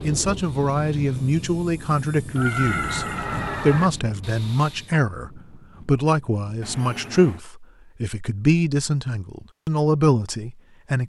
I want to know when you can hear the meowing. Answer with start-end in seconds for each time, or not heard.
2.4-3.9, 6.6-7.5.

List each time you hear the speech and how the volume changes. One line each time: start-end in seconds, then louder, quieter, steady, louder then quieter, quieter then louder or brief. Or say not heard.
0.0-11.0 steady.